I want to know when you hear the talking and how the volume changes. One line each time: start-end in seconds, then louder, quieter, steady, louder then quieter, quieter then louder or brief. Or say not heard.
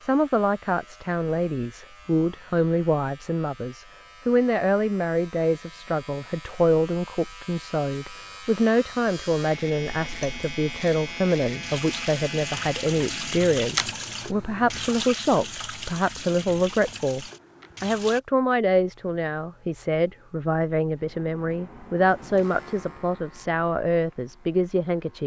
0.0-25.2 steady.